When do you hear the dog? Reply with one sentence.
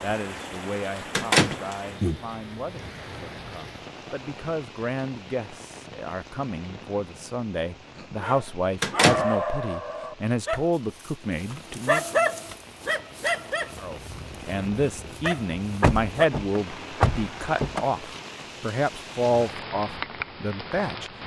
The dog can be heard from 8.0 to 16.4 s.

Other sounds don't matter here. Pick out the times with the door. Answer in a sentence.
The door can be heard from 1.1 to 2.2 s, from 8.8 to 9.2 s and from 15.8 to 17.9 s.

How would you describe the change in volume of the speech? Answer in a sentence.
The loudness of the speech goes up.